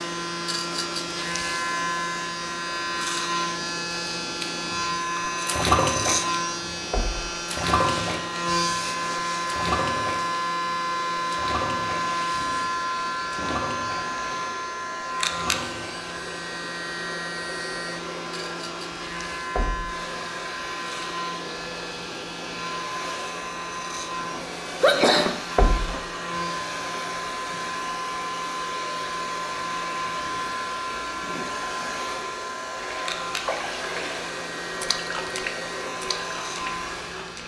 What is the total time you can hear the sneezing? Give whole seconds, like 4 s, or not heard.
2 s.